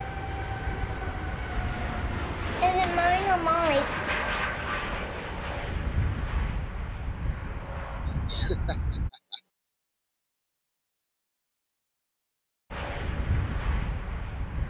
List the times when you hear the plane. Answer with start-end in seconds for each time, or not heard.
0.0-9.1, 12.7-14.6.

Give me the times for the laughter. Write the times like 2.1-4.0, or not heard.
2.6-4.0, 8.2-9.4.